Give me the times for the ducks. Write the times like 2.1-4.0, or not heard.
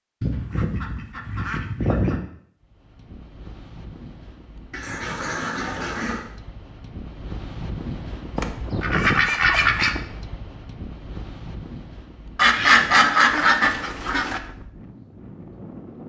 0.2-2.2, 4.7-6.2, 8.3-9.9, 12.3-14.4.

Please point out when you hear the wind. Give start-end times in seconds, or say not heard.
2.6-16.0.